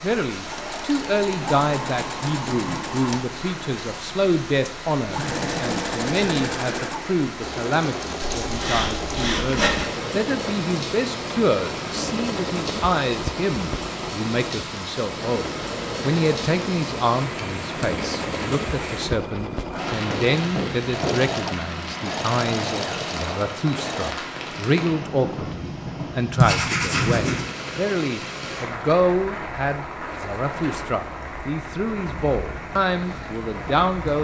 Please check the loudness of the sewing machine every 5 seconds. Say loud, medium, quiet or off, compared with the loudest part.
loud, loud, loud, loud, loud, off, off.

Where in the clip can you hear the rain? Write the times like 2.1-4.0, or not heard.
0.0-34.1.